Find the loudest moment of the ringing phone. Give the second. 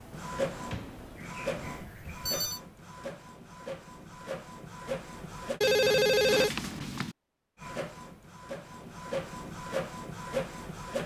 6 s.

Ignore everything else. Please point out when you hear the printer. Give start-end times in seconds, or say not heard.
0.0-5.6, 7.6-11.0.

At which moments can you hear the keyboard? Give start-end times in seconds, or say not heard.
not heard.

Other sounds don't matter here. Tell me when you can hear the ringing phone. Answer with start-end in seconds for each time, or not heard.
1.7-2.6, 5.6-7.2.